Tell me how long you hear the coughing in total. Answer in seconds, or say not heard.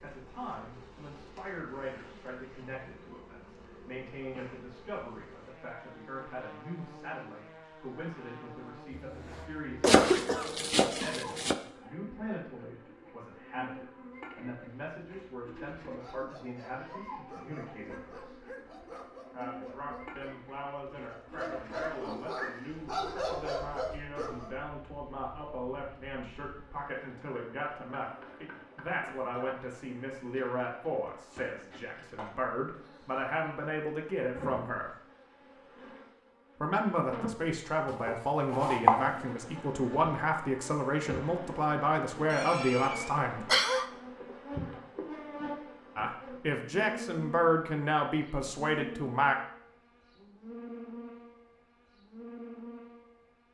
3 s.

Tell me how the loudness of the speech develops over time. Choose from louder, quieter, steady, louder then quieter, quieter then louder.
louder.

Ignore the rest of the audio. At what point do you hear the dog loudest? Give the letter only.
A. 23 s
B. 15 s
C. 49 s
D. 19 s
A.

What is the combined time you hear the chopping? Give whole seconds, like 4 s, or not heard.
3 s.